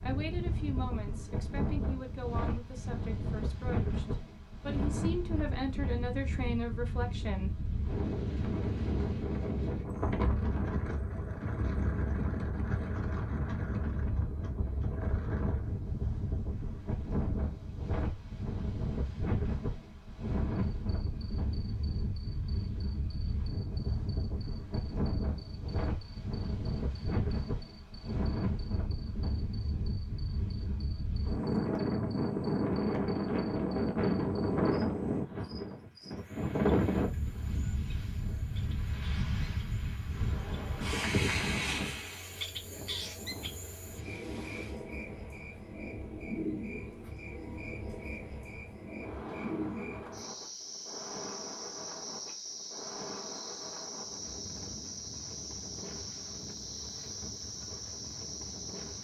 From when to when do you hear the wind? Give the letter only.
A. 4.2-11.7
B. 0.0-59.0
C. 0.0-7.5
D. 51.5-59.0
B.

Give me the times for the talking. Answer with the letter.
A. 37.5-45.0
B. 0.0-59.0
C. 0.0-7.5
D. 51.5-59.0
C.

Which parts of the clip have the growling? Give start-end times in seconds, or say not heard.
not heard.